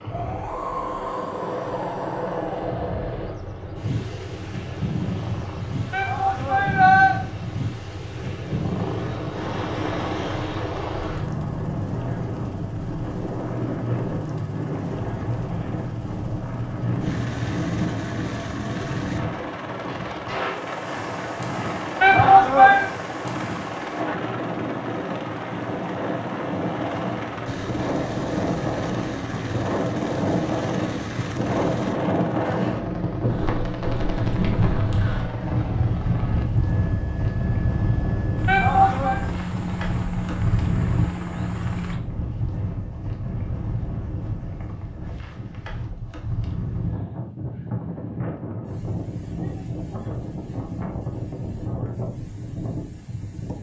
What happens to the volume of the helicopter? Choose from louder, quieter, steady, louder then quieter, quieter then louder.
steady.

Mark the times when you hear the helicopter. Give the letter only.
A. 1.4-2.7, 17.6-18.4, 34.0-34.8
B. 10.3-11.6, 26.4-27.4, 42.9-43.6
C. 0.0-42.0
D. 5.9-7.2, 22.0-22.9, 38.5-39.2
C.